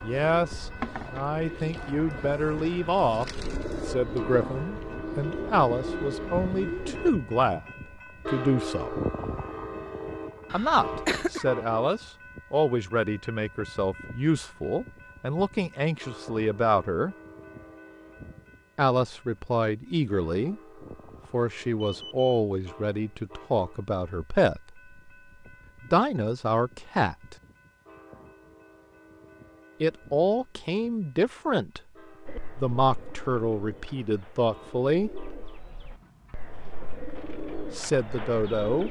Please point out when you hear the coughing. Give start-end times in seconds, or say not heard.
10.5-11.4.